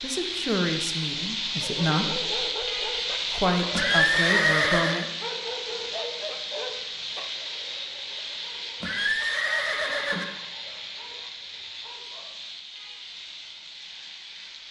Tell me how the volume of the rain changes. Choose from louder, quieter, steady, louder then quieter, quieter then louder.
quieter.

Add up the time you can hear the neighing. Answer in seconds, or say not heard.
3 s.